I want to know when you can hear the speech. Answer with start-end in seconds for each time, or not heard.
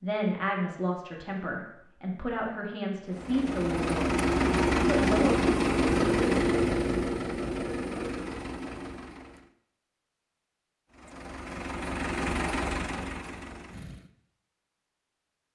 0.0-4.2, 4.8-5.4.